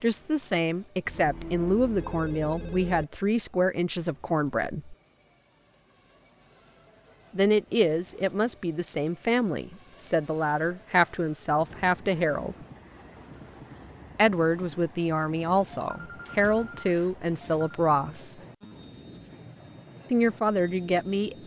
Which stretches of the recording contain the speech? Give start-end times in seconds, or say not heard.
0.0-5.0, 7.3-12.6, 14.2-18.4, 20.1-21.4.